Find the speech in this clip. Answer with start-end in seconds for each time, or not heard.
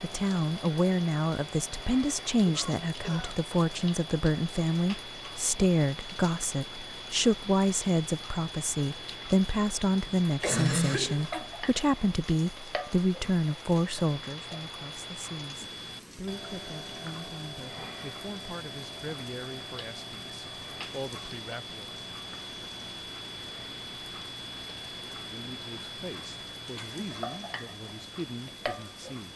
0.0-22.0, 25.2-29.3.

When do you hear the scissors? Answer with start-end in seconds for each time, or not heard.
not heard.